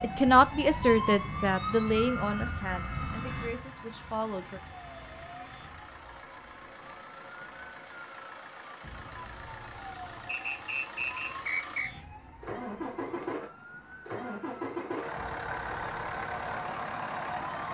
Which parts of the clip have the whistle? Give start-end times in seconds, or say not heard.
10.2-11.9.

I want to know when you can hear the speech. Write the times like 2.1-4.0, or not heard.
0.0-4.6.